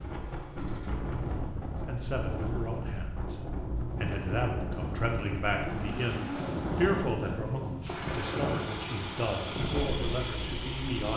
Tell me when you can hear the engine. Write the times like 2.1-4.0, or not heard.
0.0-11.1.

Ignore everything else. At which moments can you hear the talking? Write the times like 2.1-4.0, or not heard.
1.8-11.1.